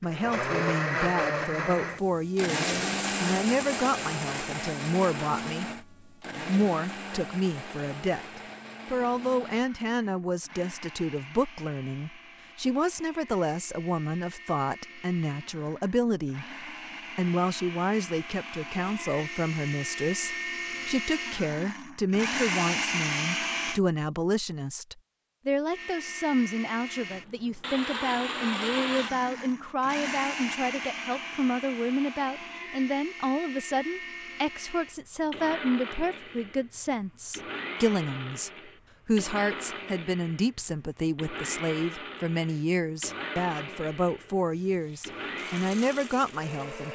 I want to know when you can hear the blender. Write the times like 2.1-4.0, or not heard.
0.0-23.8, 25.7-46.9.